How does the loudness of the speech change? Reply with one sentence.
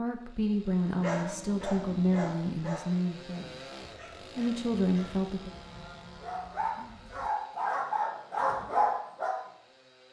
The loudness of the speech goes down, then up.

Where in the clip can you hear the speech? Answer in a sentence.
You can hear the speech from 0.0 to 5.5 s.